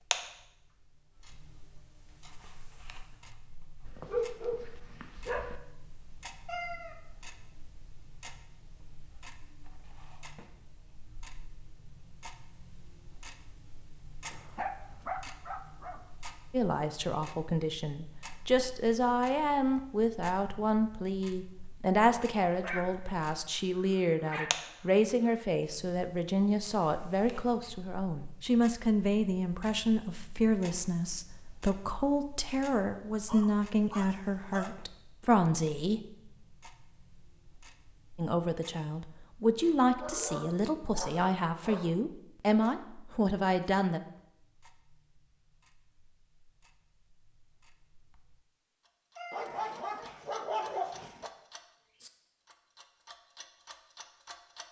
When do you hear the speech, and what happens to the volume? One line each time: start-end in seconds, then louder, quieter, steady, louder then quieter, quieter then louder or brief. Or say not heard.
16.5-36.0 steady
38.1-44.0 steady.